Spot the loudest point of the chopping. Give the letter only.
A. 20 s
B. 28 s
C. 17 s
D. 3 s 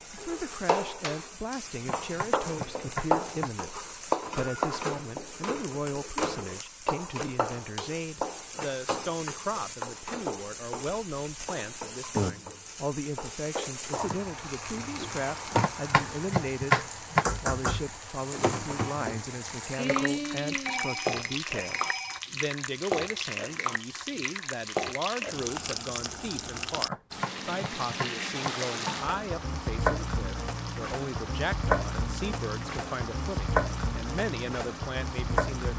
C.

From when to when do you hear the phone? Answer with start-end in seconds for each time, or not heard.
19.8-22.2.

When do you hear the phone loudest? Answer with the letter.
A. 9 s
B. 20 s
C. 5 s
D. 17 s
B.